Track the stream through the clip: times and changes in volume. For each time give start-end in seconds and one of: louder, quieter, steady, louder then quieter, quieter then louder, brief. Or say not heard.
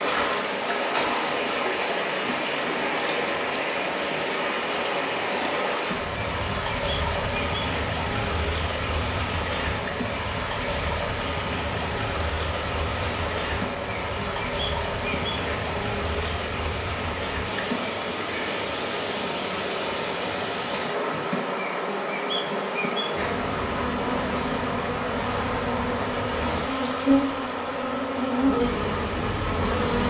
0.0-29.9 quieter.